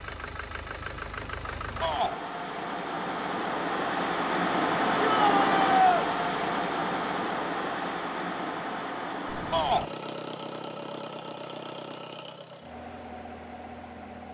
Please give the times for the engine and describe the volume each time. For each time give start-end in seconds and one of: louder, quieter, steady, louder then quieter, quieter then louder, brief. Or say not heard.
0.0-14.2 louder then quieter.